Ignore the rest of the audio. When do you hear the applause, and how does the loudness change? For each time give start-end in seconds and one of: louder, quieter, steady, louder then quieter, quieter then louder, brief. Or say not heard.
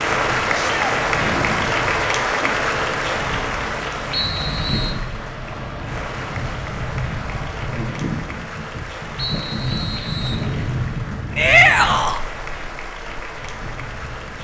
0.0-14.3 quieter.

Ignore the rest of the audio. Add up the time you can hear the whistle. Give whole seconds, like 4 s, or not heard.
2 s.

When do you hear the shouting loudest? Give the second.
12 s.